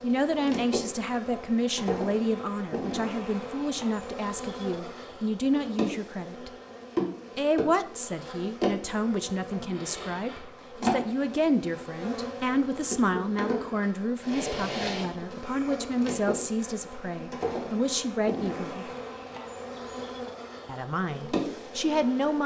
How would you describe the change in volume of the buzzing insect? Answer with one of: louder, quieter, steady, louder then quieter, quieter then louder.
steady.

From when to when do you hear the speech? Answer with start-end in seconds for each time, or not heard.
0.0-6.5, 7.3-18.9, 20.6-22.4.